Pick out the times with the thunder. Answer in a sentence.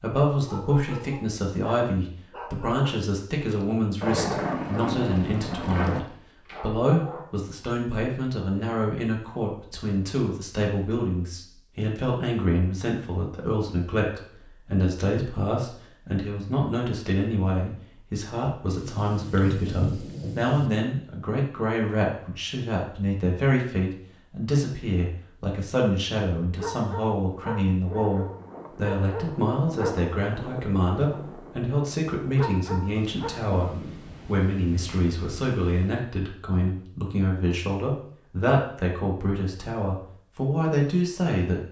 You can hear the thunder from 4.0 to 6.0 s, from 18.8 to 20.7 s and from 32.9 to 36.0 s.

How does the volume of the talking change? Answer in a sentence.
The volume of the talking stays about the same.